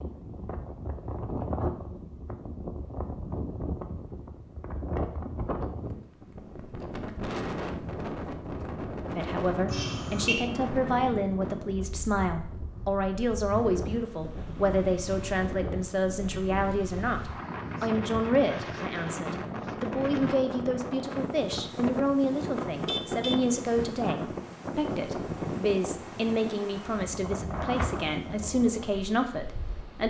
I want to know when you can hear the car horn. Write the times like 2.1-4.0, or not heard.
9.7-10.5, 22.7-23.9.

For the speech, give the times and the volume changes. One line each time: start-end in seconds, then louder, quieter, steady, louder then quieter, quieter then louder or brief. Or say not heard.
9.2-30.0 steady.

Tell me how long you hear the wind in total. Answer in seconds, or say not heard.
30 s.